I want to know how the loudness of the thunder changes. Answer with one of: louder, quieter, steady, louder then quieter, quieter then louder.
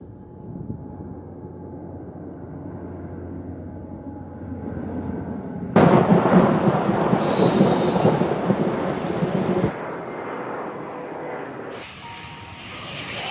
quieter.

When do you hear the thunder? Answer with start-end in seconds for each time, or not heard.
5.8-9.8.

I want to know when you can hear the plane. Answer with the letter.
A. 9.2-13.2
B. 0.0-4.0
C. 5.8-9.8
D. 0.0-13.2
D.